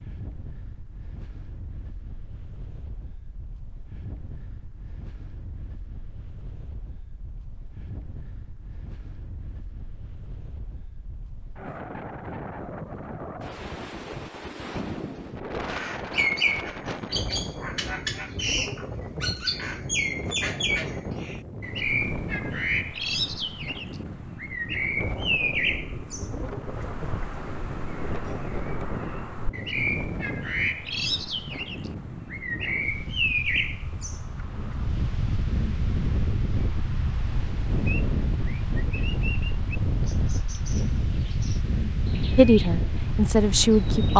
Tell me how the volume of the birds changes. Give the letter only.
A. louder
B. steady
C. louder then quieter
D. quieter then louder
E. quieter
E.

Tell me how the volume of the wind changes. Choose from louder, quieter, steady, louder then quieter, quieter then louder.
louder.